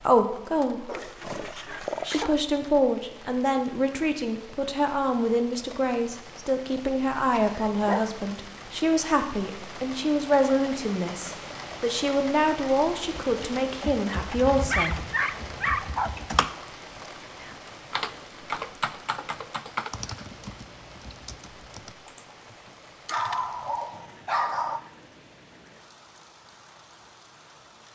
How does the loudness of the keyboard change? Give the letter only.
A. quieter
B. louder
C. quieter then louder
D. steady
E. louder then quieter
E.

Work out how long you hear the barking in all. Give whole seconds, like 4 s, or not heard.
6 s.